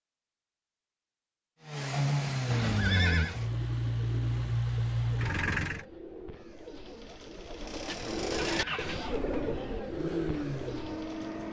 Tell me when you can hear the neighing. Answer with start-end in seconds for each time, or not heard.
2.5-3.4, 8.0-9.6.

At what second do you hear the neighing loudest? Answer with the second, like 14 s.
3 s.